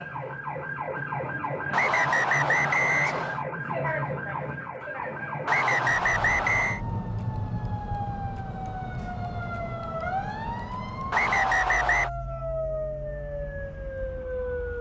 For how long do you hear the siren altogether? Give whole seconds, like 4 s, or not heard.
15 s.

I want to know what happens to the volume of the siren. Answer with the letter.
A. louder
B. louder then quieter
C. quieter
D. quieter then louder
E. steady
E.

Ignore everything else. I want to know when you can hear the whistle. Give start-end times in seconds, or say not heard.
1.7-3.4, 5.5-6.8, 11.1-12.1.